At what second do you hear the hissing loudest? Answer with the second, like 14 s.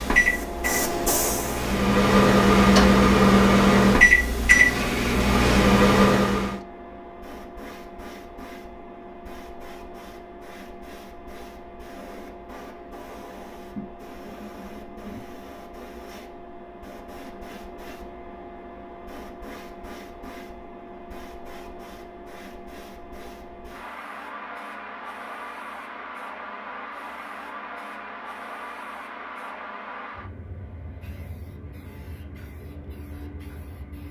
1 s.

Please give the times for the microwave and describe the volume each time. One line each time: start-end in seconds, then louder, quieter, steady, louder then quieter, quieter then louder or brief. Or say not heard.
0.0-6.6 louder.